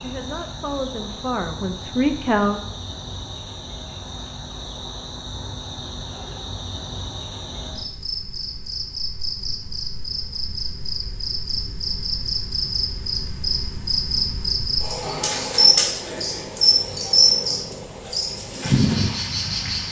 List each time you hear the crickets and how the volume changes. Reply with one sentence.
You can hear the crickets from 0.0 to 19.8 s, getting louder.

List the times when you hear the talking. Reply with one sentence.
You can hear the talking from 0.0 to 2.6 s.